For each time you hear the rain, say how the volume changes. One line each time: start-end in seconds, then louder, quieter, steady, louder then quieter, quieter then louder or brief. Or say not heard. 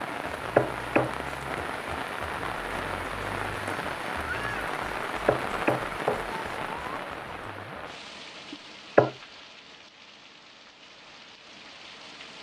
0.0-12.3 quieter.